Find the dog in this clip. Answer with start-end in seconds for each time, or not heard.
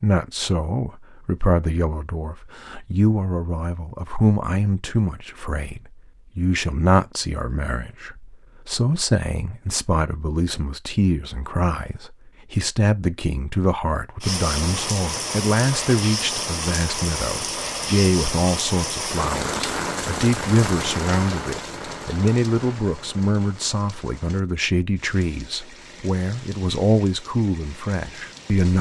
not heard.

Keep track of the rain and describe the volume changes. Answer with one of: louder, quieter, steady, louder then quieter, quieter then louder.
quieter.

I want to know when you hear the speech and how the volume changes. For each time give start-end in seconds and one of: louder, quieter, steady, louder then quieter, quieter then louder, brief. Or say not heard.
0.0-28.7 steady.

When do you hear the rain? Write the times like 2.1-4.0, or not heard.
14.2-28.7.